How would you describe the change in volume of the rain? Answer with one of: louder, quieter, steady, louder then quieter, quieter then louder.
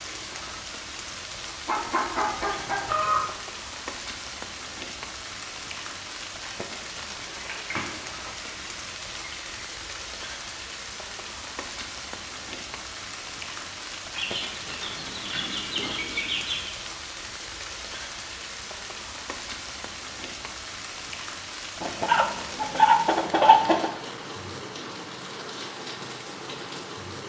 steady.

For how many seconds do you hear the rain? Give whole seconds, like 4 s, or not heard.
27 s.